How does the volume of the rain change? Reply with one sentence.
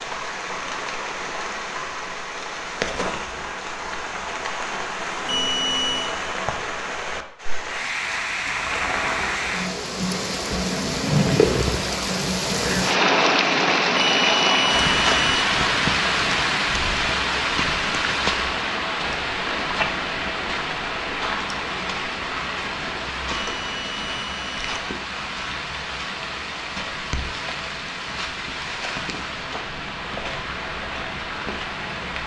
The volume of the rain goes up, then down.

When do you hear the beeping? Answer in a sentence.
You can hear the beeping from 5.2 to 6.2 s, from 13.9 to 15.4 s and from 23.4 to 24.8 s.